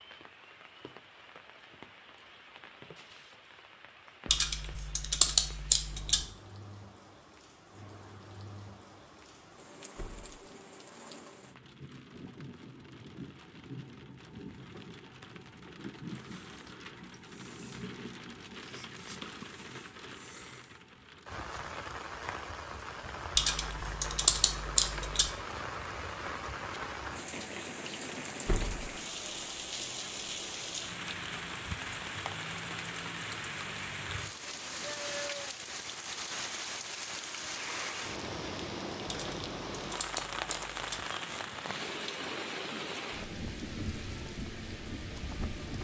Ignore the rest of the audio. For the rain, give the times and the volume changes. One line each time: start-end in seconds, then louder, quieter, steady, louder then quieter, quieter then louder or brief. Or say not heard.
0.0-45.7 louder.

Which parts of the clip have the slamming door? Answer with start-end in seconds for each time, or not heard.
9.9-10.4, 28.4-28.9.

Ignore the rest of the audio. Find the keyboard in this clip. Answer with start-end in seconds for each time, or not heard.
4.2-6.2, 23.4-25.3, 39.0-41.0.